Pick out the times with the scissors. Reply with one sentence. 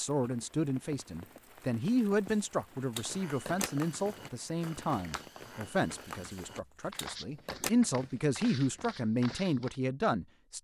The scissors can be heard from 1.9 to 3.7 s and from 6.0 to 7.7 s.